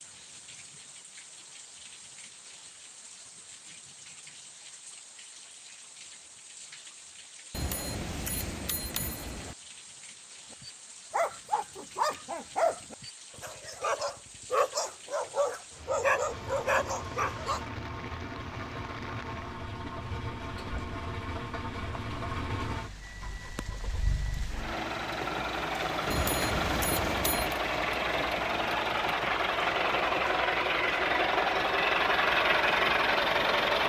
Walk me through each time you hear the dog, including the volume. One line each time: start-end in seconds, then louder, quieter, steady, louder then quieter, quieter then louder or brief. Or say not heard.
10.6-17.6 steady.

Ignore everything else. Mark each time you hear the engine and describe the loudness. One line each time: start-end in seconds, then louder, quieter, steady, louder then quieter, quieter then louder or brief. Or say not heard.
16.3-33.8 louder.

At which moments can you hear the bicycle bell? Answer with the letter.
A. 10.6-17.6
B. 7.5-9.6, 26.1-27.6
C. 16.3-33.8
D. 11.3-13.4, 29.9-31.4
B.